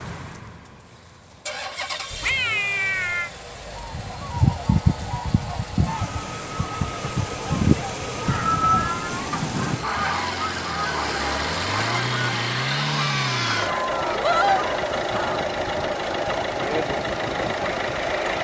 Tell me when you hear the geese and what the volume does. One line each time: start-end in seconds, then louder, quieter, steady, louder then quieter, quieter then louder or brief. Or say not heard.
3.8-15.4 quieter.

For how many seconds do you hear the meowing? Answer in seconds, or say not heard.
4 s.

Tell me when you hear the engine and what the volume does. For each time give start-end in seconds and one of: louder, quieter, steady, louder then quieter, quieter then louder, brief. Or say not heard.
0.0-18.3 louder.